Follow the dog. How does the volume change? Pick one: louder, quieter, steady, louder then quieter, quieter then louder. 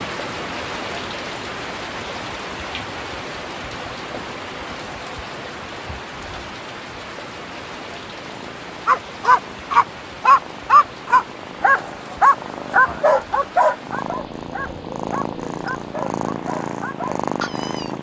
quieter.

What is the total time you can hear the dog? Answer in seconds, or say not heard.
9 s.